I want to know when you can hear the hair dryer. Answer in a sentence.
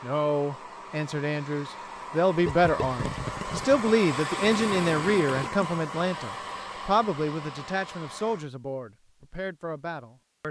You can hear the hair dryer from 0.0 to 8.4 s.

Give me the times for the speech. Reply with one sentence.
You can hear the speech from 0.0 to 10.4 s.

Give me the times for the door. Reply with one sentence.
The door can't be heard in this clip.